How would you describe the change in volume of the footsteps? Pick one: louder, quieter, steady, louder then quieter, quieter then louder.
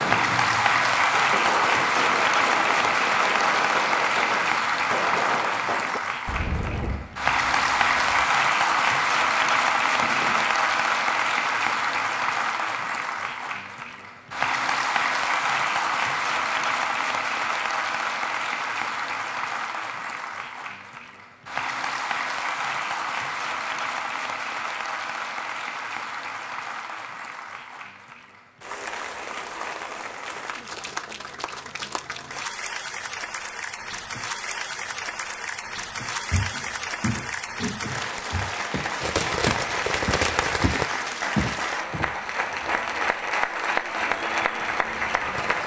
quieter then louder.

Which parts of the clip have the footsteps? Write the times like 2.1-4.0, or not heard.
36.3-42.2.